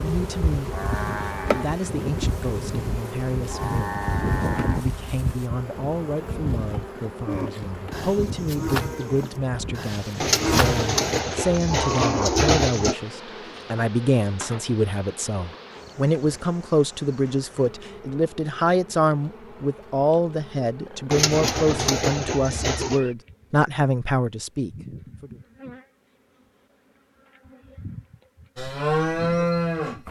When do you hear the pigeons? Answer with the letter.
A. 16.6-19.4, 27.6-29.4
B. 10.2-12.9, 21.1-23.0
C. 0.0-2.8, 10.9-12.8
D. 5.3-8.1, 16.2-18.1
B.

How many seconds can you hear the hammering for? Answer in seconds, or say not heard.
not heard.